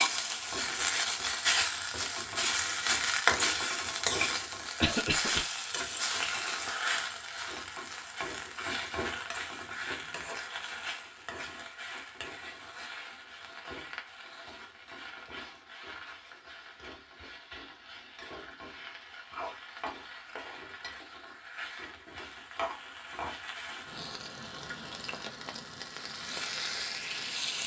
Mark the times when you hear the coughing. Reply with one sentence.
You can hear the coughing from 4.8 to 5.4 s.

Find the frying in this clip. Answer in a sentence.
You can hear the frying from 0.0 to 27.6 s.